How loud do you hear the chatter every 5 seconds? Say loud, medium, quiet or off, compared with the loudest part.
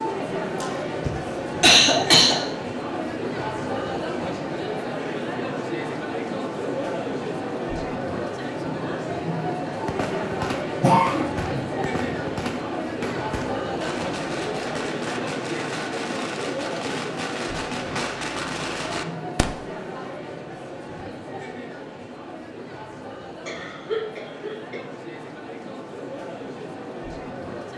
loud, loud, loud, loud, medium, medium.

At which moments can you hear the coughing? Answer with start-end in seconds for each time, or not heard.
0.6-2.4, 10.8-11.6, 23.4-24.8.